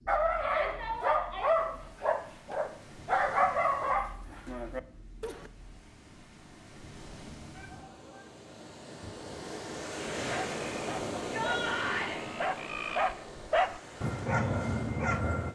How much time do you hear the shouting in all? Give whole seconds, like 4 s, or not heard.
3 s.